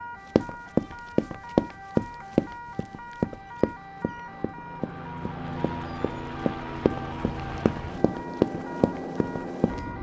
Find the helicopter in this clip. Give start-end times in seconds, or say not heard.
0.0-9.9.